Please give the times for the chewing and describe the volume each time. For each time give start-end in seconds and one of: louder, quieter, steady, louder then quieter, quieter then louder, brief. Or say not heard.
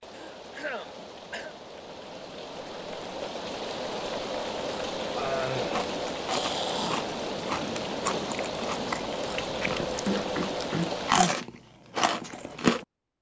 5.5-12.8 louder.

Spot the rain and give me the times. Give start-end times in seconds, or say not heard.
0.0-11.2.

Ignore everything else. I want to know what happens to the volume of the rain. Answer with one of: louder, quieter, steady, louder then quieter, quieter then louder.
louder.